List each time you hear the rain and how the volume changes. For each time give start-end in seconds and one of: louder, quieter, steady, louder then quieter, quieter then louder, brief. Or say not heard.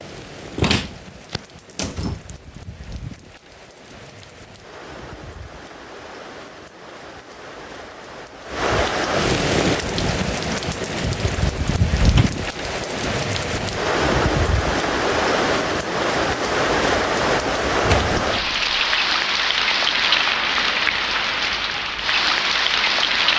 0.0-23.3 louder.